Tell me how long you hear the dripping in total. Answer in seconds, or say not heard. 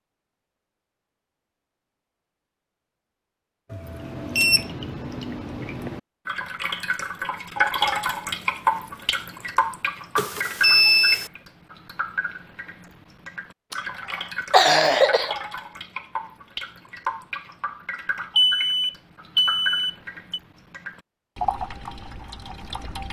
19 s.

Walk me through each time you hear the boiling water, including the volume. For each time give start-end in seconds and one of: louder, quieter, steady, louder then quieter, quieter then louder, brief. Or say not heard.
not heard.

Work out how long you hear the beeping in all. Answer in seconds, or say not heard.
4 s.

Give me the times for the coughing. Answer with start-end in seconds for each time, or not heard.
13.7-15.3.